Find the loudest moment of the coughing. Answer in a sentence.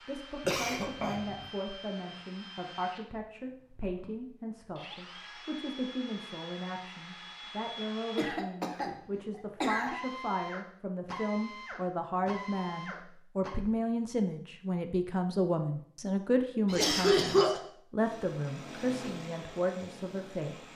The volume of the coughing peaks at 17 seconds.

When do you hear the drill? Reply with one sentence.
You can hear the drill from 0.0 to 13.6 s and from 17.9 to 20.7 s.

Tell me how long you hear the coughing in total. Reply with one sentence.
You can hear the coughing for 4 seconds altogether.